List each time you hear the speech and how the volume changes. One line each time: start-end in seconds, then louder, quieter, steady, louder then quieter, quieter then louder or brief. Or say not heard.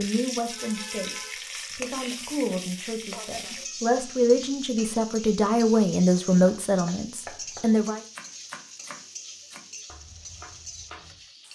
0.0-8.0 louder.